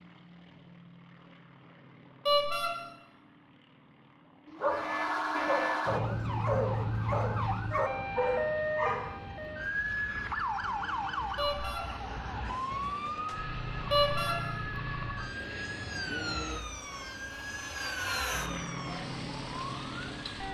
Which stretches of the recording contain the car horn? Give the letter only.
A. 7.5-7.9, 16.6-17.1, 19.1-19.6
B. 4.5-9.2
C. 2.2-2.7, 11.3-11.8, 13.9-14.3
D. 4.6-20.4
C.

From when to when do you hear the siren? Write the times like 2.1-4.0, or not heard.
4.6-20.4.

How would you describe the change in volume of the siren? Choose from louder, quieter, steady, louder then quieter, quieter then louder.
quieter.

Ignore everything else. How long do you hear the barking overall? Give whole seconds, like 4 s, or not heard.
5 s.